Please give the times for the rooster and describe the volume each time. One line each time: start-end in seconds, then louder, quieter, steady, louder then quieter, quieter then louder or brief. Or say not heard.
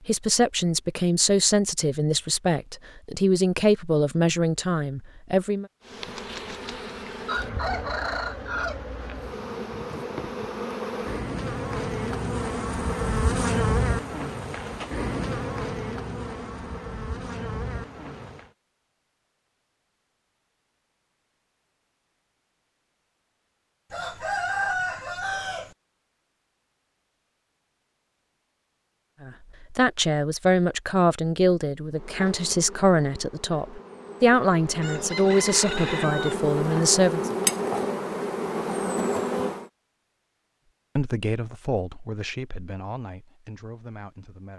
6.0-10.1 louder then quieter
23.9-25.8 brief
34.8-36.4 brief.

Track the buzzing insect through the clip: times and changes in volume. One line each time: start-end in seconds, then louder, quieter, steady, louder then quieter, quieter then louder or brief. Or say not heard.
5.8-18.5 louder then quieter
31.9-39.7 louder.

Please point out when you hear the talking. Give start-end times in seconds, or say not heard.
0.1-5.7, 29.2-37.3, 41.0-44.5.